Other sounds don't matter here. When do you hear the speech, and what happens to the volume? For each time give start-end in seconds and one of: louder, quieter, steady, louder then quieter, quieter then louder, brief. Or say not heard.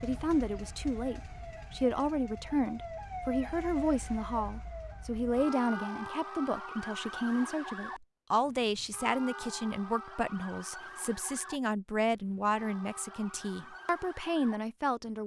0.0-15.2 steady.